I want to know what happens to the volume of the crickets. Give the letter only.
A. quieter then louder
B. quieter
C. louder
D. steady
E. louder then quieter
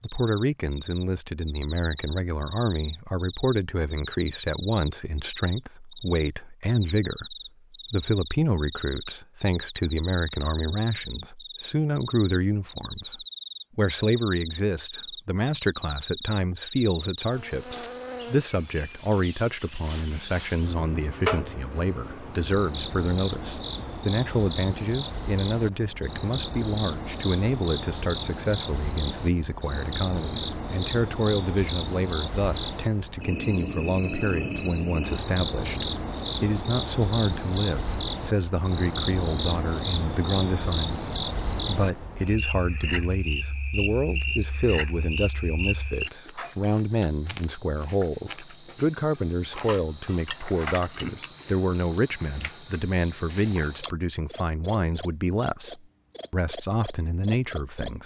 C.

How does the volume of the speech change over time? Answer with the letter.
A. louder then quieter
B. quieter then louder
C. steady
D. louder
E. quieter
C.